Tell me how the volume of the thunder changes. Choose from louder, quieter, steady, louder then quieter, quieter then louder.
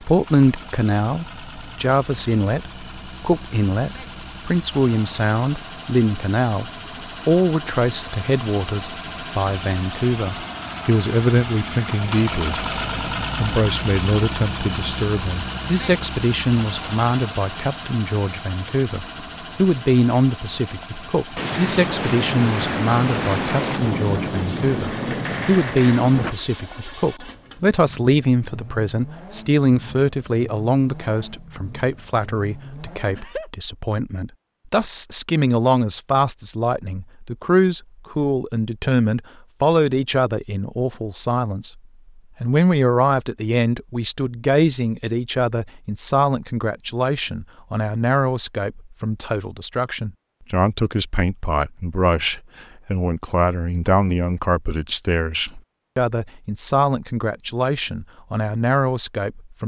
steady.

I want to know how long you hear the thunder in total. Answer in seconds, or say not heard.
5 s.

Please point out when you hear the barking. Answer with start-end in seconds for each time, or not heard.
not heard.